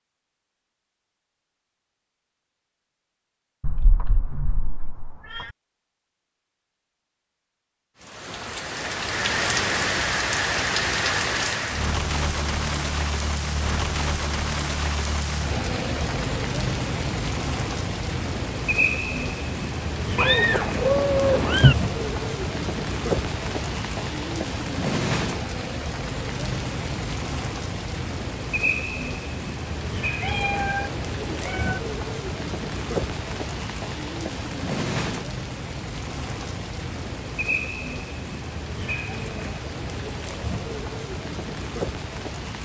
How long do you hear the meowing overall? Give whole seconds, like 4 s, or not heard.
5 s.